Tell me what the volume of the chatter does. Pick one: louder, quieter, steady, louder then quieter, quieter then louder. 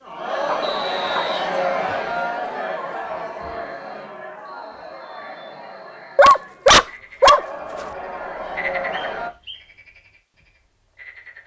quieter then louder.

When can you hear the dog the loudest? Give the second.
7 s.